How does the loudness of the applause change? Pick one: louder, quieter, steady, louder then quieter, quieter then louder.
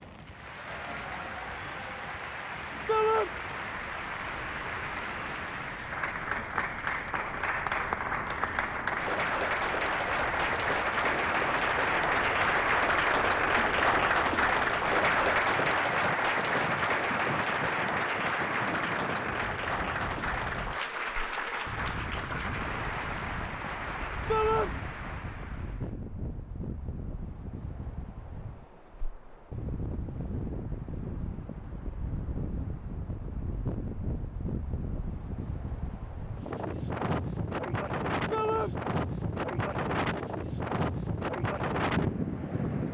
louder then quieter.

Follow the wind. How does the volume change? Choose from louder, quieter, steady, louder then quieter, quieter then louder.
louder.